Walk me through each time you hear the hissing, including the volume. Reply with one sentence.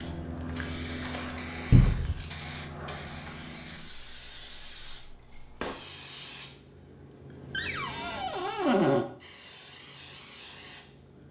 You can hear the hissing from 0.0 to 11.2 s, getting quieter.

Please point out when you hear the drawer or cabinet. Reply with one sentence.
The drawer or cabinet can be heard from 1.7 to 2.2 s and from 7.5 to 9.1 s.